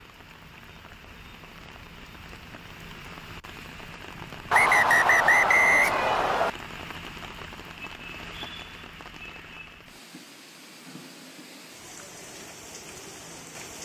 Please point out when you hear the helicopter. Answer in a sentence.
The helicopter can't be heard in this clip.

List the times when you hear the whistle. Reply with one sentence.
You can hear the whistle from 4.5 to 6.5 s.